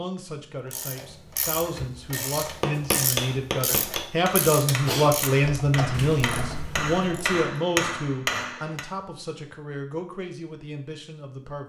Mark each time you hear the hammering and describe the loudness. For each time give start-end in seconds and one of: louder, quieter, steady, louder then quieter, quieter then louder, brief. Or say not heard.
2.6-8.8 quieter then louder.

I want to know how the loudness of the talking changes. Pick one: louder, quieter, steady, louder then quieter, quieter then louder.
louder then quieter.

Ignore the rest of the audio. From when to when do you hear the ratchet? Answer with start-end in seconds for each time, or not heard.
0.7-7.4.